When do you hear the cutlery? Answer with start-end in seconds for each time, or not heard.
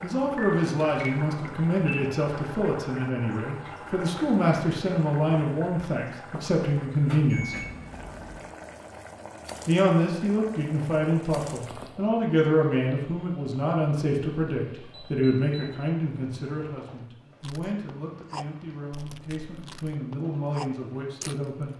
not heard.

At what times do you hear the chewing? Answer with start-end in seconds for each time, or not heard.
17.4-21.5.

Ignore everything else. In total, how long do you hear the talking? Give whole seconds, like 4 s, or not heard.
20 s.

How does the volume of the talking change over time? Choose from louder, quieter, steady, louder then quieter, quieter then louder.
quieter.